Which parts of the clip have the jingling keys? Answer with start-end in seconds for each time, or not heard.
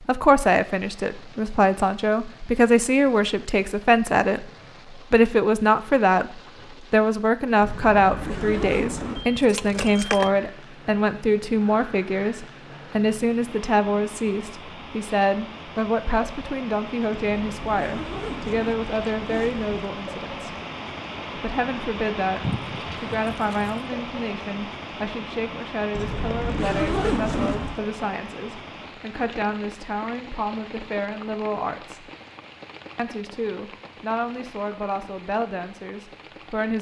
9.3-10.3, 22.4-23.9.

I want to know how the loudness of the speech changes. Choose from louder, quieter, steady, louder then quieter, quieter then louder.
quieter.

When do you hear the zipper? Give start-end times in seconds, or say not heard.
7.6-9.2, 17.1-19.9, 25.9-27.9.